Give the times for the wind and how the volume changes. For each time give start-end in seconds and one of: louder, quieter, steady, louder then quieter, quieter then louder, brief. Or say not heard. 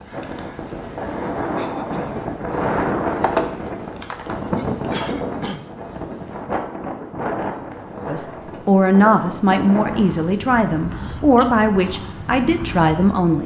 0.0-13.4 quieter.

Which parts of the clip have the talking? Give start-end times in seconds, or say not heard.
8.1-13.4.